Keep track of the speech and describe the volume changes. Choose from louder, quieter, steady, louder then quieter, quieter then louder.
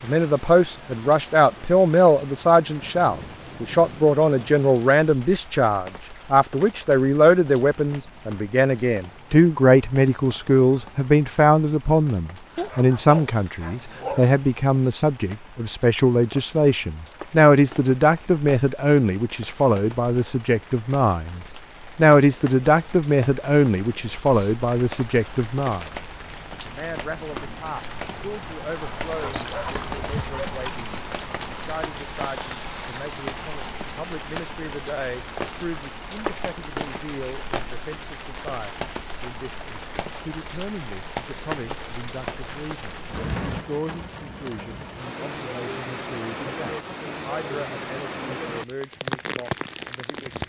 quieter.